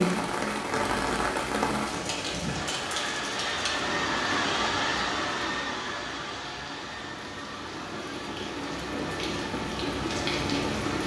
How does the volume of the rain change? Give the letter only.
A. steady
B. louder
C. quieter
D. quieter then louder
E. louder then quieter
D.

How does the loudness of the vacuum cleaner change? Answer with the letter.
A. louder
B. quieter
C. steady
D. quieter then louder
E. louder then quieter
B.